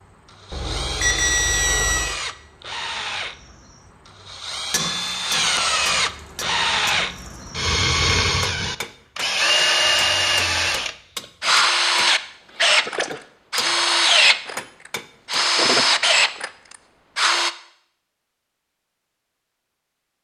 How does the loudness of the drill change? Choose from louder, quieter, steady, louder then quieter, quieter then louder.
louder.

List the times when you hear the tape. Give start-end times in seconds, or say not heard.
not heard.